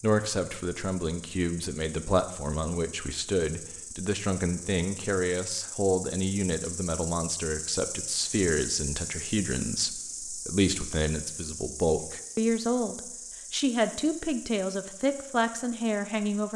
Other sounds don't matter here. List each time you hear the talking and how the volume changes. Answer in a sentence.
You can hear the talking from 0.0 to 16.5 s, at a steady volume.